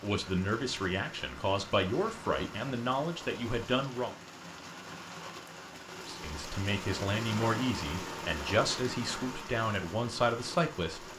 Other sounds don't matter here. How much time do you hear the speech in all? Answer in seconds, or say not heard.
9 s.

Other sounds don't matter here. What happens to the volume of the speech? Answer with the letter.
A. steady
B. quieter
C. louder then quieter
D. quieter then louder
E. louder
A.